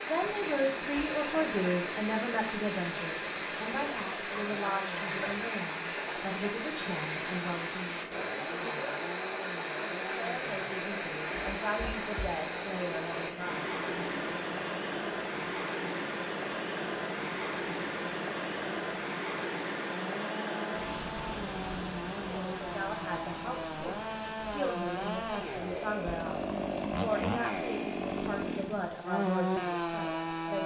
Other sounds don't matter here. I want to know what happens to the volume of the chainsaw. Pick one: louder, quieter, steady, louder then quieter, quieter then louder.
louder.